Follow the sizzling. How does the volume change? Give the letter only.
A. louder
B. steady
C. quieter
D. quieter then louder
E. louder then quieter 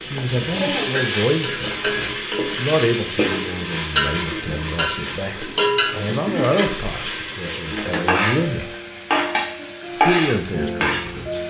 B.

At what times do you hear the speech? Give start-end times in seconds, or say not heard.
0.0-8.7, 9.9-11.4.